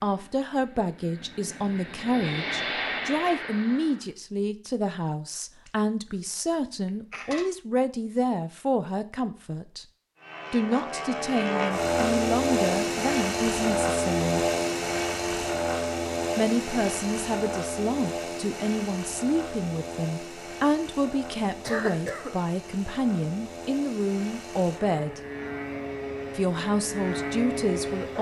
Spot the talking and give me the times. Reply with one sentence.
You can hear the talking from 0.0 to 9.8 s, from 10.5 to 14.4 s, from 16.4 to 25.2 s and from 26.4 to 28.1 s.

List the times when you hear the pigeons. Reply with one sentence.
You can't hear the pigeons here.